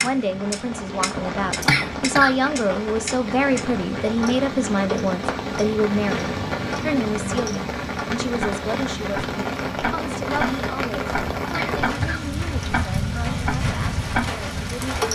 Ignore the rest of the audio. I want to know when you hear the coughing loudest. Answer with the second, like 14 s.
2 s.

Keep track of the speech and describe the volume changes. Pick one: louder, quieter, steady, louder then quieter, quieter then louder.
quieter.